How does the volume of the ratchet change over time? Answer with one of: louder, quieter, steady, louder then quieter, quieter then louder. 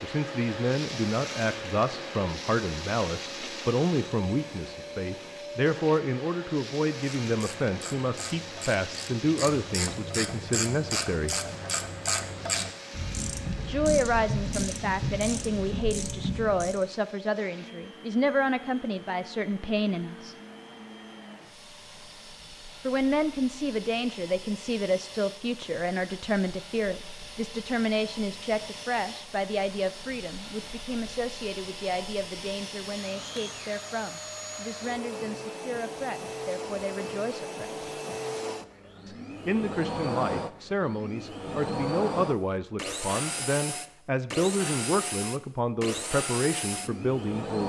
louder.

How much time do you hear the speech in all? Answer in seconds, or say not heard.
42 s.